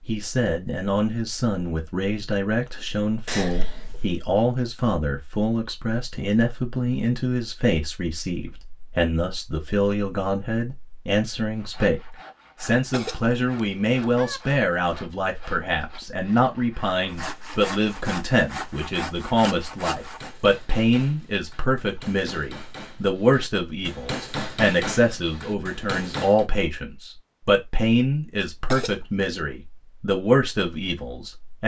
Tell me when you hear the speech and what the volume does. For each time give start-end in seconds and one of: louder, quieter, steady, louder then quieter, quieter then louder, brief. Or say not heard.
0.1-31.6 steady.